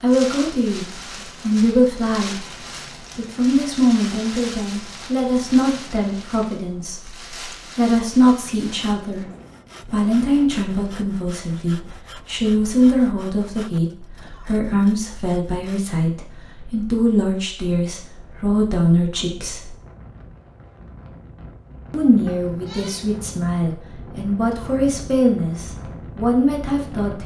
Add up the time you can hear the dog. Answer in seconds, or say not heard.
not heard.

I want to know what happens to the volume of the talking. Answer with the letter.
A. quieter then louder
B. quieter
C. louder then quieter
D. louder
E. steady
E.